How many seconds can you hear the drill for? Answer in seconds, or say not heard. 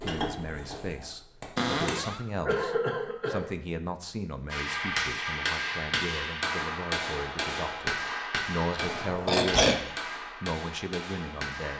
not heard.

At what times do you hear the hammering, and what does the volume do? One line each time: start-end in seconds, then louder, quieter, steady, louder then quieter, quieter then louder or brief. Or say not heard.
0.0-2.0 brief
4.5-11.7 quieter.